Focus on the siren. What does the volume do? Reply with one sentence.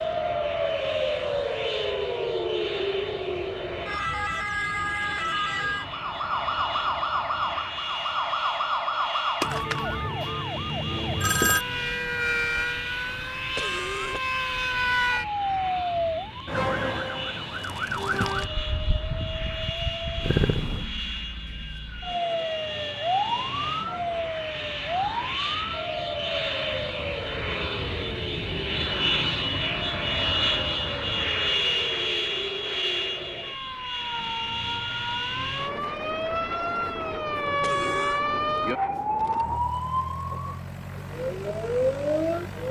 The volume of the siren goes down, then up.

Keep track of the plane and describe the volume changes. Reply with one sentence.
The loudness of the plane goes up, then down.